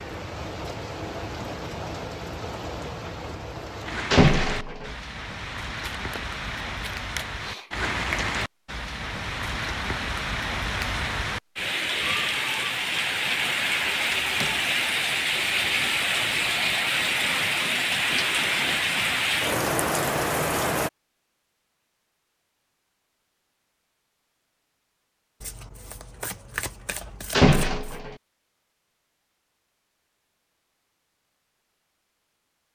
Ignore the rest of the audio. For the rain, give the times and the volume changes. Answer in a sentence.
You can hear the rain from 0.0 to 20.9 s, getting louder.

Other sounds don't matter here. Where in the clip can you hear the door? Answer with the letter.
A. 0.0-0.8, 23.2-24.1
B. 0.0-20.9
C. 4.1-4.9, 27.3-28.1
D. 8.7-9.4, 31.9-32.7
C.